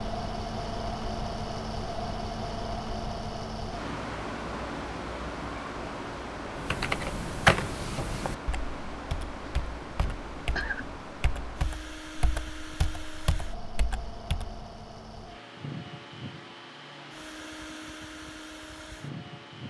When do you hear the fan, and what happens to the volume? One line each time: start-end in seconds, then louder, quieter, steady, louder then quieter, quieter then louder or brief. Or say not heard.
0.0-19.6 quieter.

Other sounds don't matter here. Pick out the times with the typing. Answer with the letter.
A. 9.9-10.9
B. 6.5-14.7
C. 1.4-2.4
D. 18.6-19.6
B.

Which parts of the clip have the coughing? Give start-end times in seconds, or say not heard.
9.9-10.9.